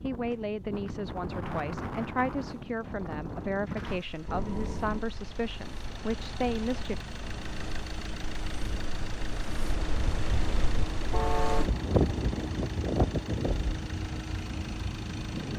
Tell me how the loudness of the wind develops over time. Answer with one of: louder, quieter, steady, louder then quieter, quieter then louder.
quieter then louder.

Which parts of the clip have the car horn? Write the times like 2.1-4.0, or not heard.
4.2-5.0, 11.1-11.8.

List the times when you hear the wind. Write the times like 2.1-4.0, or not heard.
0.0-15.5.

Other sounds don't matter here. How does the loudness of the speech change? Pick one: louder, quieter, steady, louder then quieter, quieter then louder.
steady.